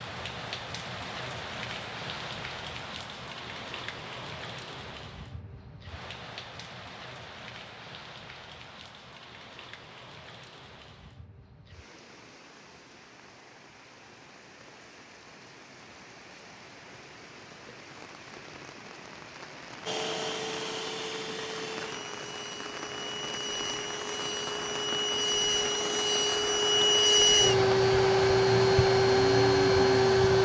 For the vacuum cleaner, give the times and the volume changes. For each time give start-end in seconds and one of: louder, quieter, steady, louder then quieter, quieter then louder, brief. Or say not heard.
19.9-30.4 louder.